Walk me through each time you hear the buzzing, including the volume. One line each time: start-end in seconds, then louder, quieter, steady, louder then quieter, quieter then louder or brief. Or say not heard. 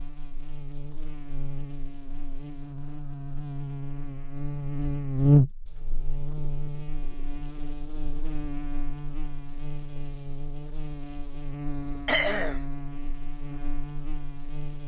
0.0-14.8 louder then quieter.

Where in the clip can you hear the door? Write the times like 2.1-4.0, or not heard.
not heard.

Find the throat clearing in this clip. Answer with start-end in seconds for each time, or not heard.
12.1-12.6.